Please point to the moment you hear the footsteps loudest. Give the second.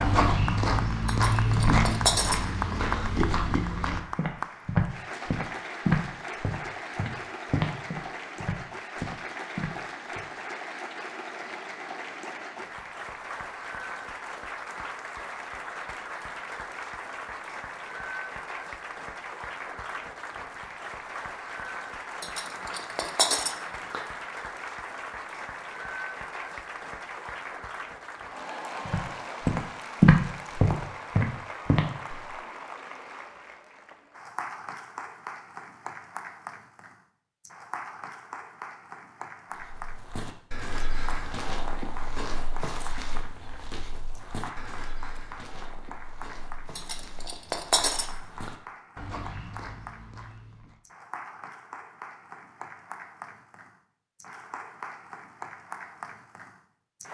30 s.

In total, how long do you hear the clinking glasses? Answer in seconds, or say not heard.
6 s.